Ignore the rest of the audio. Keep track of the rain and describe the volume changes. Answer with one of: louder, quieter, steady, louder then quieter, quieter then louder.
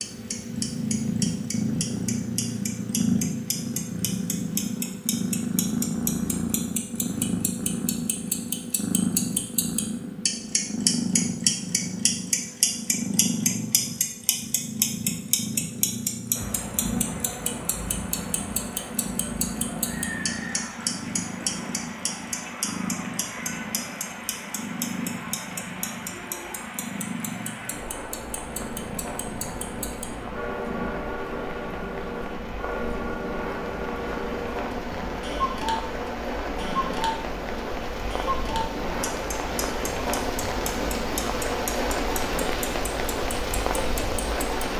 louder.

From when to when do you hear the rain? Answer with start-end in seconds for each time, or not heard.
16.4-44.7.